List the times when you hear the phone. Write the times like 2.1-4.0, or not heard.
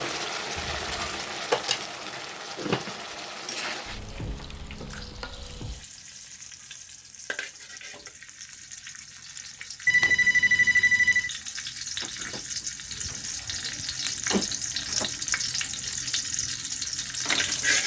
0.6-1.2, 9.8-11.3.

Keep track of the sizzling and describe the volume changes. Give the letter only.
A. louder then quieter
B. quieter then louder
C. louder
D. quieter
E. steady
B.